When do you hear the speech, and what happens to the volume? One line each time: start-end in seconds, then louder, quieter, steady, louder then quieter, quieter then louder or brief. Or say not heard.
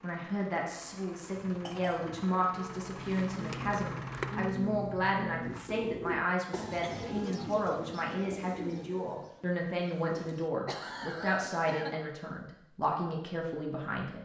0.0-14.2 steady.